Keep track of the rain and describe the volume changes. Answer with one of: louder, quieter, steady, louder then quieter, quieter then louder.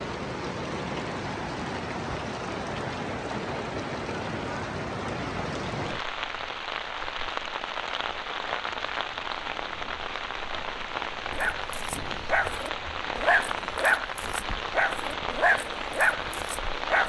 steady.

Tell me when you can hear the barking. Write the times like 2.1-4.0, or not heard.
11.3-17.0.